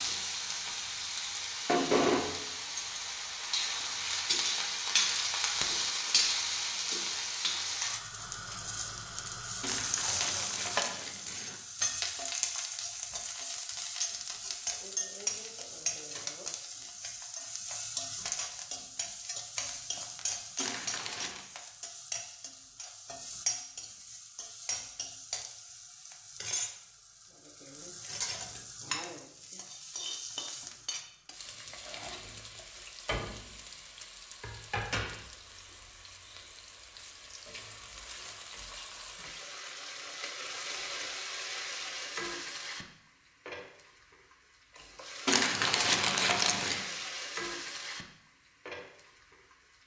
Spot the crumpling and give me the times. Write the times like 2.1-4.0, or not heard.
9.6-11.6, 20.6-21.4, 45.2-47.0.